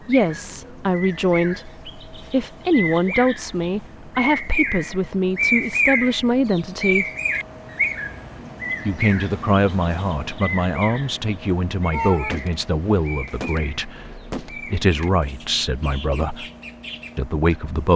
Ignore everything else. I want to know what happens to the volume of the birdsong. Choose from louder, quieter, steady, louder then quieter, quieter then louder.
louder then quieter.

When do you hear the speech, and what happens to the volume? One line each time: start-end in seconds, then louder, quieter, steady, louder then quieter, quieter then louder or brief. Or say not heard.
0.1-7.0 steady
8.8-16.4 quieter then louder
17.1-17.9 brief.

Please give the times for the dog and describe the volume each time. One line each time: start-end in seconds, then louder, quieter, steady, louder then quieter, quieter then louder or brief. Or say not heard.
not heard.